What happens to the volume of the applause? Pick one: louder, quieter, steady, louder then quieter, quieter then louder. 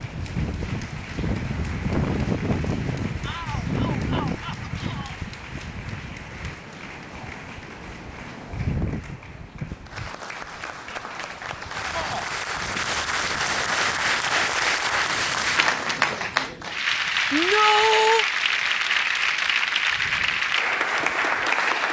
louder.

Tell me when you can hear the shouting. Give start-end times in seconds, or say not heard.
3.2-5.2, 11.9-12.3, 17.3-18.2.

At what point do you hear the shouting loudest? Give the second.
18 s.